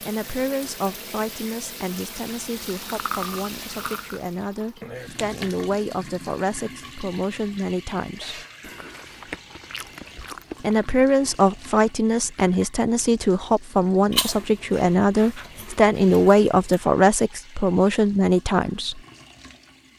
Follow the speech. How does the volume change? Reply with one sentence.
The volume of the speech goes up.